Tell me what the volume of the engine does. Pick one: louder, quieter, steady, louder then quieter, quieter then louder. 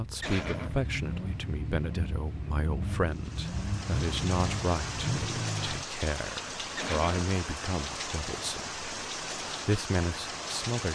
steady.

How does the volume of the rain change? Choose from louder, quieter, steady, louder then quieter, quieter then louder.
steady.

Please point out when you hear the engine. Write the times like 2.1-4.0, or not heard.
0.0-5.8.